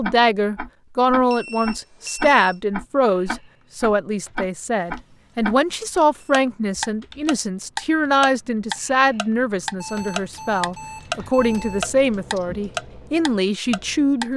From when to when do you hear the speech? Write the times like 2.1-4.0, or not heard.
0.0-14.3.